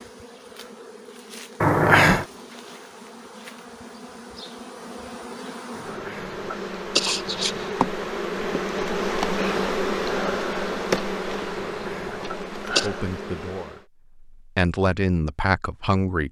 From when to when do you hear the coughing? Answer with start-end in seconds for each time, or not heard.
1.6-2.2, 5.8-7.7, 11.6-12.9.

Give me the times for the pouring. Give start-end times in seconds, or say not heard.
not heard.